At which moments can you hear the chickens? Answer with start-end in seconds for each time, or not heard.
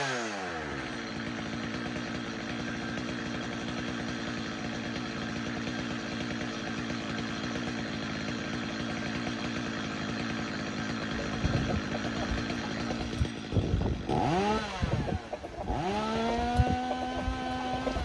11.1-18.0.